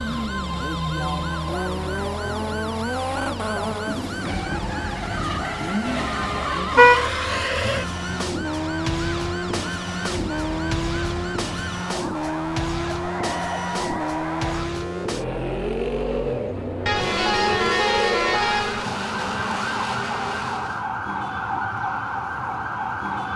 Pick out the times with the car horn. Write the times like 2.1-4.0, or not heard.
5.8-7.1, 16.9-18.9.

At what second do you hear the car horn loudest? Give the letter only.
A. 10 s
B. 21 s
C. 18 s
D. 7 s
D.